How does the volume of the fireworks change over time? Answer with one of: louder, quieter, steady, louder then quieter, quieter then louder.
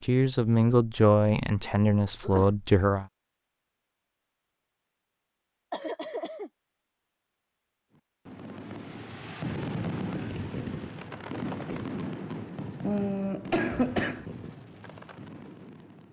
quieter.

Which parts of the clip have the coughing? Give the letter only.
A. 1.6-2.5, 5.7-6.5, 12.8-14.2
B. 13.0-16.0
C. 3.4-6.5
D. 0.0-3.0
A.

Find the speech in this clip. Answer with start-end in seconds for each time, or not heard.
0.0-3.0.